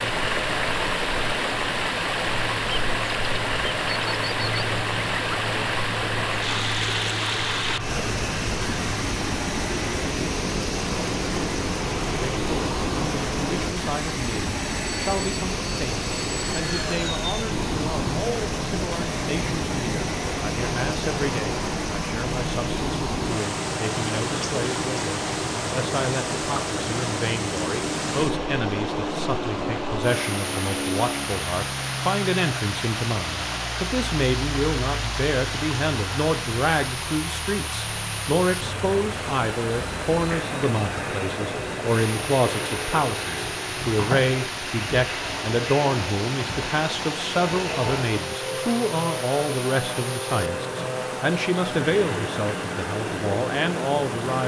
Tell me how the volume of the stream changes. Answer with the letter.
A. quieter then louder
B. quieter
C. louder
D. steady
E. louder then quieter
B.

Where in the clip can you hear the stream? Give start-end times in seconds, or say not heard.
0.0-54.4.